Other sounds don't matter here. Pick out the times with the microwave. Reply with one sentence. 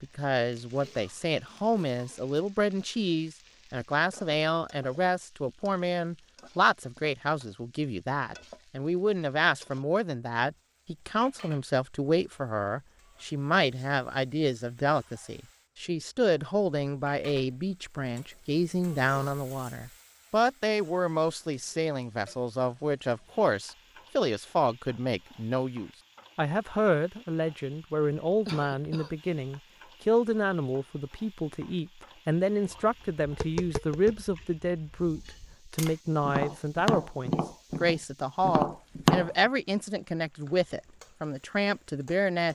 The microwave can't be heard in this clip.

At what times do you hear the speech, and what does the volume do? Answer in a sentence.
The speech can be heard from 0.0 to 42.4 s, at a steady volume.